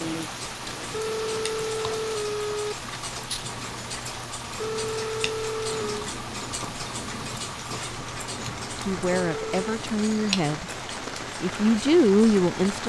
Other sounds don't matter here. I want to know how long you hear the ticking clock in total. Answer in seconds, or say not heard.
13 s.